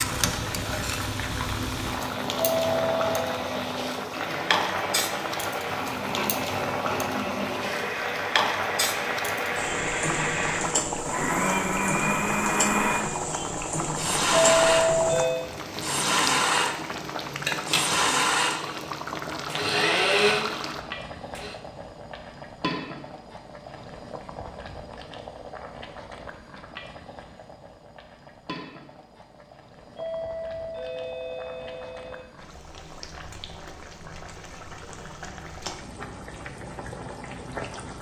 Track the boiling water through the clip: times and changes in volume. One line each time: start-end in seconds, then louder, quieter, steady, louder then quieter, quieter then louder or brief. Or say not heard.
0.0-37.9 quieter.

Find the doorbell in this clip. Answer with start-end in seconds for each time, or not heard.
2.4-3.4, 14.3-15.4, 29.9-32.2.